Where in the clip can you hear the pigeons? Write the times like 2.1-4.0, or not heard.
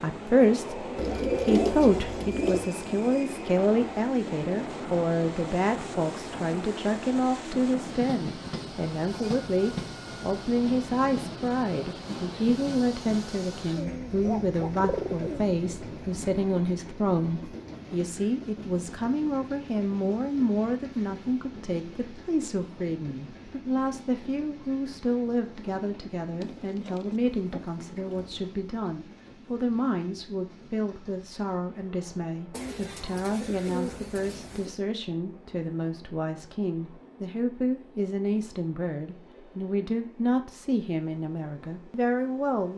0.9-2.7, 13.8-15.4, 26.4-28.4, 32.5-34.8.